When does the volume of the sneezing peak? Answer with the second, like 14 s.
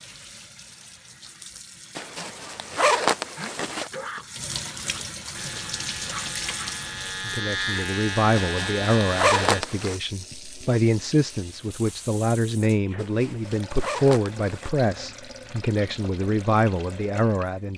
4 s.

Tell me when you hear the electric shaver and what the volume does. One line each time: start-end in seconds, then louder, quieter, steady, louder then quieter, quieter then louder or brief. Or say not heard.
5.3-9.7 louder.